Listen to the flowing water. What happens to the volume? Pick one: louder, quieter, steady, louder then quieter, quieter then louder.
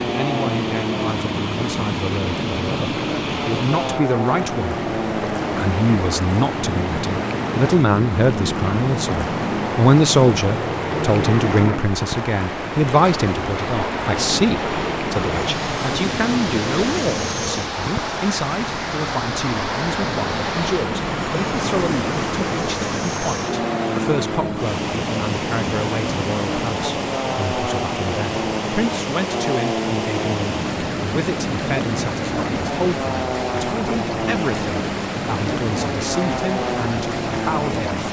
steady.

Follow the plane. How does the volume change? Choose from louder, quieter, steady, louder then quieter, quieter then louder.
steady.